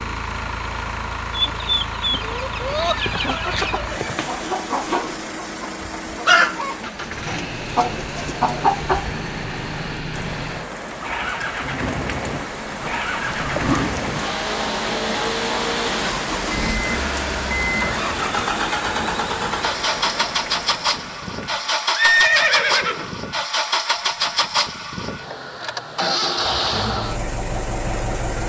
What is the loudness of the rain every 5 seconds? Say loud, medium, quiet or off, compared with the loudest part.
medium, medium, loud, loud, medium, off.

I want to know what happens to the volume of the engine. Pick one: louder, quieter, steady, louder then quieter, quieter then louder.
louder.